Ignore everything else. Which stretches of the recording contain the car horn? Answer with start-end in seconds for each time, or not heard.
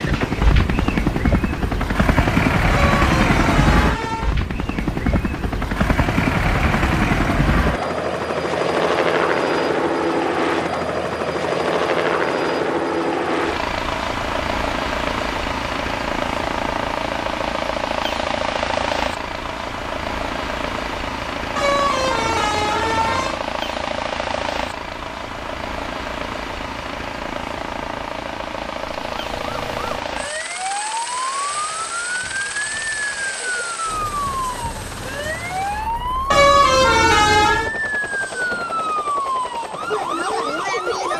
2.7-4.4, 21.6-23.4, 36.3-37.7.